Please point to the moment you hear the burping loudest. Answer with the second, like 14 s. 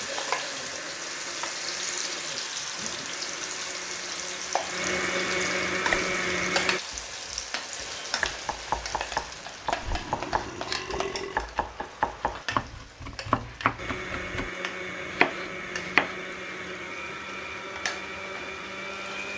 11 s.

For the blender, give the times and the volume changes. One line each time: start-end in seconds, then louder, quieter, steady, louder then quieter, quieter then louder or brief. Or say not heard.
0.0-6.8 louder
13.8-19.3 steady.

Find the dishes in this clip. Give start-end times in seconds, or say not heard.
not heard.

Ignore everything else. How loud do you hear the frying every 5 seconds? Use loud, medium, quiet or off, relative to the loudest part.
loud, loud, medium, medium.